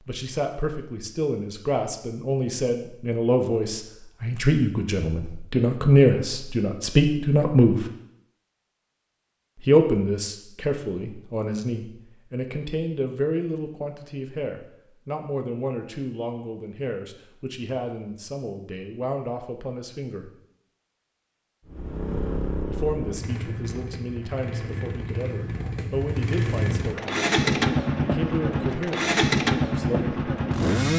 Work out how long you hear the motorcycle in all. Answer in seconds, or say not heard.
9 s.